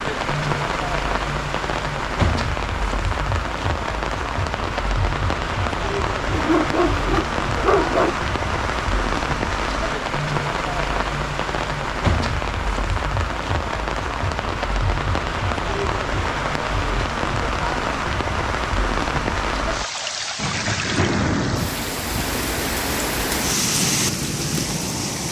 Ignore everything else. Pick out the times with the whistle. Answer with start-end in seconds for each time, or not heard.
not heard.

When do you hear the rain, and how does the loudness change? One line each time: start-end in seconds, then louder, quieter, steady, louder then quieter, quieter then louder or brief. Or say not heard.
0.0-25.2 steady.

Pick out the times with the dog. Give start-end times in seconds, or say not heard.
6.3-8.2.